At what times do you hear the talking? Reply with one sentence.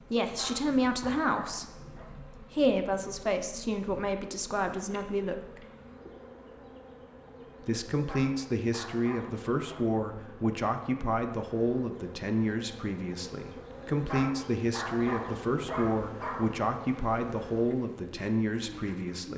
The talking can be heard from 0.0 to 5.6 s and from 7.7 to 19.3 s.